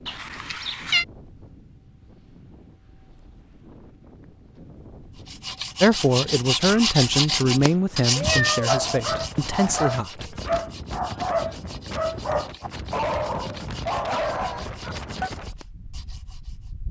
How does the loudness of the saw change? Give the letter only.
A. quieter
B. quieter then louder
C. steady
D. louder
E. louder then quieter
A.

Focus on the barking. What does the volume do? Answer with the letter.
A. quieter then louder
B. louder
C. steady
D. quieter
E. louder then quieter
C.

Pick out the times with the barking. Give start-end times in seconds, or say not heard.
8.2-15.3.